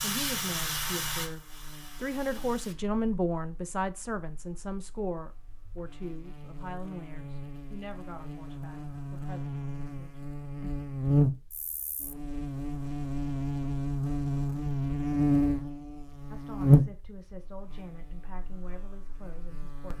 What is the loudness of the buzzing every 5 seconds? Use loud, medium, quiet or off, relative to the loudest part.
quiet, quiet, loud, loud.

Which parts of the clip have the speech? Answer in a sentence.
You can hear the speech from 0.0 to 10.7 s and from 16.3 to 19.9 s.